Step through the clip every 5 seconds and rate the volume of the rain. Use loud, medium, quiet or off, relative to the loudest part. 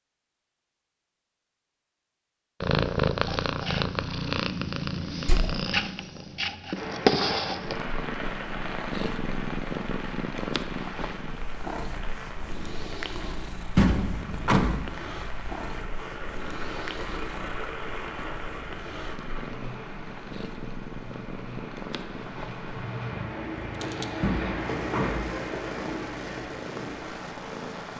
off, loud, medium, loud, loud, loud.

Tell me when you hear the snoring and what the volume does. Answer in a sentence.
The snoring can't be heard in this clip.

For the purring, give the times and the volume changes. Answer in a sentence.
The purring can be heard from 2.6 to 27.9 s, getting quieter.